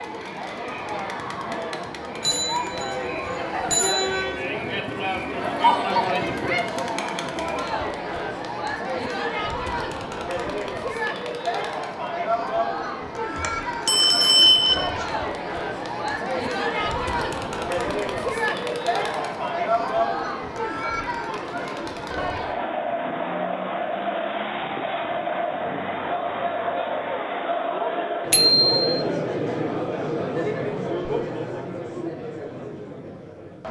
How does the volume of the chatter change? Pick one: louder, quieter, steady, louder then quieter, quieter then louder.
steady.